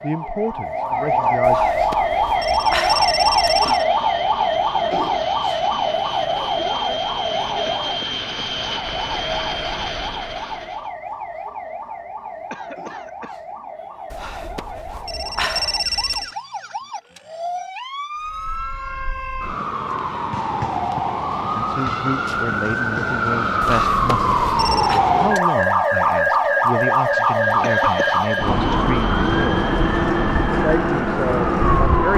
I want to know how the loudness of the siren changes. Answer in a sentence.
The loudness of the siren goes down, then up.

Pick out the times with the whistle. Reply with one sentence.
The whistle can't be heard in this clip.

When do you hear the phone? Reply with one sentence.
The phone can be heard from 1.4 to 3.9 s, from 14.1 to 16.4 s and from 23.6 to 25.0 s.